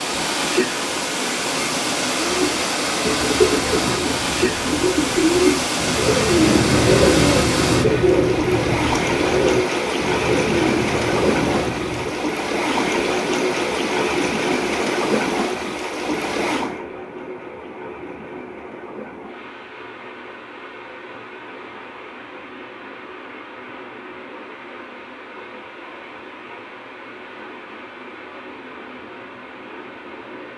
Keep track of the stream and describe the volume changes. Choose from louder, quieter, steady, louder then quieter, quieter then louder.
quieter.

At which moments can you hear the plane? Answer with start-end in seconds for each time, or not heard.
not heard.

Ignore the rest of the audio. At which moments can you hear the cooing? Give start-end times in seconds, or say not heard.
2.1-12.2.